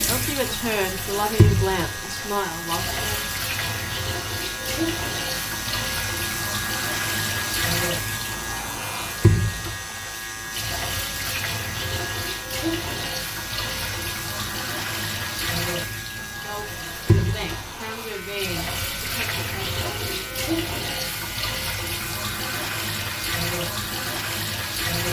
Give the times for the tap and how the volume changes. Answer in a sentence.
You can hear the tap from 0.0 to 25.0 s, at a steady volume.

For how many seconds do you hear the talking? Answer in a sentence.
You can hear the talking for 7 seconds altogether.